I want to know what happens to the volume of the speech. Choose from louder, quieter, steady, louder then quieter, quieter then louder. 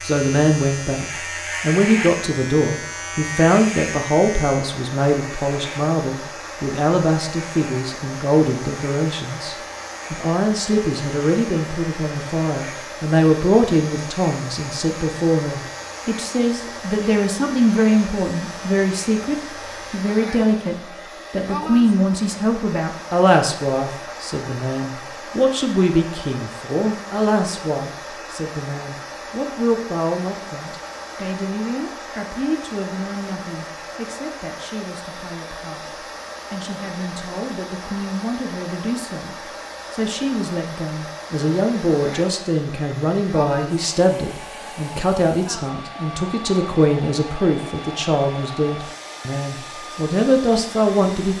quieter then louder.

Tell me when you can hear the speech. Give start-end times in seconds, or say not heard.
0.0-51.3.